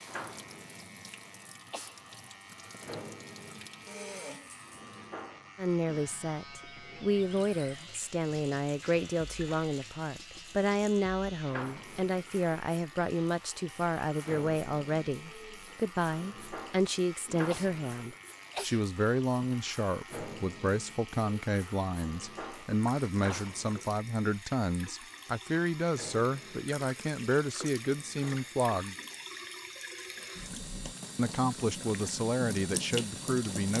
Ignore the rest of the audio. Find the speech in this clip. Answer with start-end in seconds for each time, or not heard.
5.5-28.9, 31.1-33.7.